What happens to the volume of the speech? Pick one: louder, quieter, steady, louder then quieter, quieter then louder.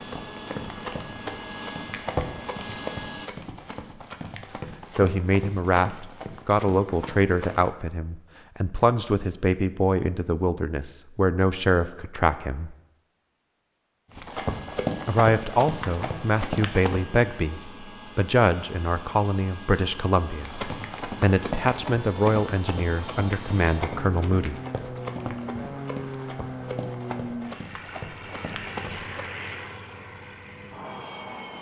steady.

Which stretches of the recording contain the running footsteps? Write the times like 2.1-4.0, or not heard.
0.0-7.7, 14.1-17.1, 20.4-29.2.